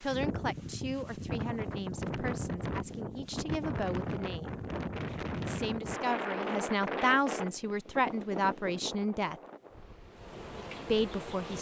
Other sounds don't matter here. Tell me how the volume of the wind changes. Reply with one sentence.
The volume of the wind goes down.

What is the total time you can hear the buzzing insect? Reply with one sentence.
The buzzing insect can be heard for 2 seconds in total.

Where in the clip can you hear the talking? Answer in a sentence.
The talking can be heard from 0.0 to 4.6 s, from 5.4 to 9.3 s and from 10.8 to 11.5 s.